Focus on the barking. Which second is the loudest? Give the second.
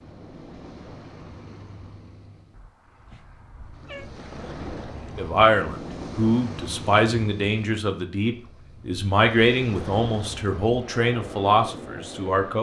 4 s.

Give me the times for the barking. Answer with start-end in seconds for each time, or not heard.
2.5-4.0.